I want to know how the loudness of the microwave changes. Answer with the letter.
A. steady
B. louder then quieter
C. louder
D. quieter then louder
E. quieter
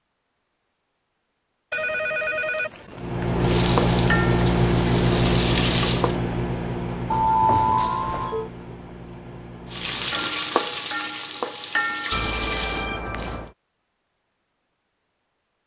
E.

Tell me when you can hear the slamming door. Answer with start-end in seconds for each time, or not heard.
not heard.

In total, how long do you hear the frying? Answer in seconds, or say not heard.
6 s.